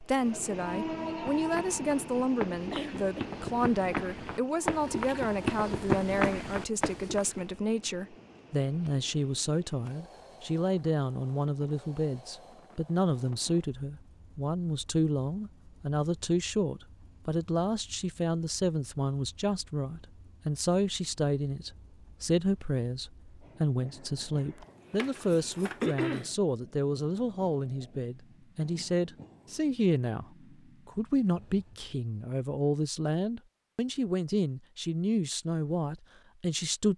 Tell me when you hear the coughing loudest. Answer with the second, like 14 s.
26 s.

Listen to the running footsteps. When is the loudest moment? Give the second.
6 s.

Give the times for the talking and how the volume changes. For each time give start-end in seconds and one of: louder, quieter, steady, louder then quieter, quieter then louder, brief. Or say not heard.
0.0-30.2 steady
30.9-36.9 steady.